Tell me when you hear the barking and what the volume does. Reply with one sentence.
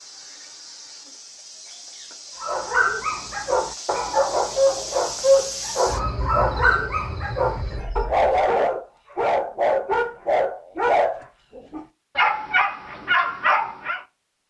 You can hear the barking from 2.4 to 14.1 s, at a steady volume.